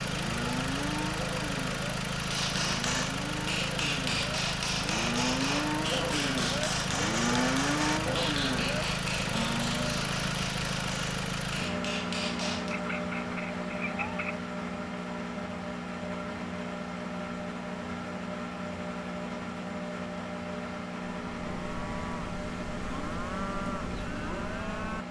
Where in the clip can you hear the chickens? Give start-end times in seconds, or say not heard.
12.7-14.3.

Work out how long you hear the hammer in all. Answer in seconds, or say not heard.
11 s.